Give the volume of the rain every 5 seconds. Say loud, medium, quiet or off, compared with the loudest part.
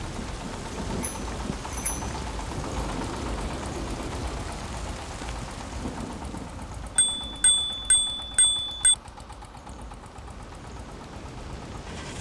loud, medium, medium.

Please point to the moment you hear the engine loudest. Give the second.
3 s.